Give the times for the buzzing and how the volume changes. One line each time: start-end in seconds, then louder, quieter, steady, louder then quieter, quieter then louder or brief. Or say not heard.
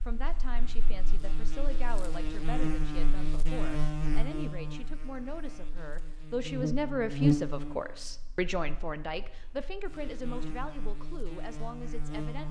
0.0-12.4 louder then quieter.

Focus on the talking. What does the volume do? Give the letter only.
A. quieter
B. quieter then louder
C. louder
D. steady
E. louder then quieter
E.